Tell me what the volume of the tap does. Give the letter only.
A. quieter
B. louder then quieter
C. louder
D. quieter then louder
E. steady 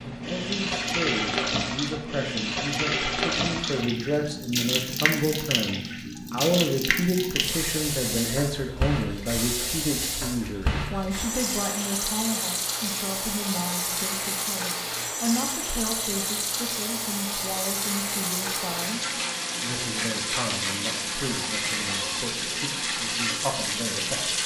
E.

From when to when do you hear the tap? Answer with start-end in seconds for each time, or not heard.
0.0-24.4.